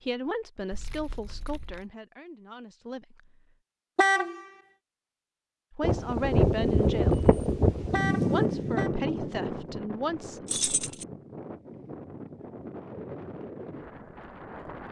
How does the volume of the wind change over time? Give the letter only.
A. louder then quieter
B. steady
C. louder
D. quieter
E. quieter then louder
D.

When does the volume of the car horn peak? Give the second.
4 s.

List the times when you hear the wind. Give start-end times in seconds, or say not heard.
5.8-14.8.